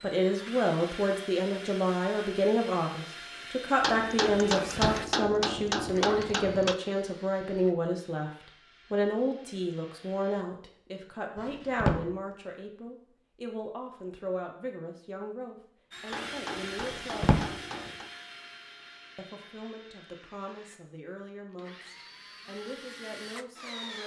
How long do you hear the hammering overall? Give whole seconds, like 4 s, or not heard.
5 s.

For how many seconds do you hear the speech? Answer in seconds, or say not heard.
22 s.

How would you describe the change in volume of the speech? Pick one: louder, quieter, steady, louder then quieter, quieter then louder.
quieter.